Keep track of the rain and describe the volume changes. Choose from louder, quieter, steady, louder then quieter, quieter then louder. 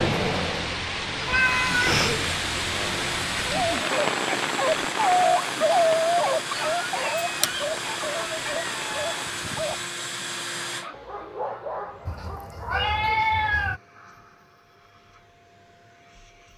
quieter.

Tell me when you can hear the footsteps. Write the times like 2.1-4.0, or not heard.
not heard.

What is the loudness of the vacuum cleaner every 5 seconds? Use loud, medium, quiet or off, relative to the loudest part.
loud, loud, medium, quiet.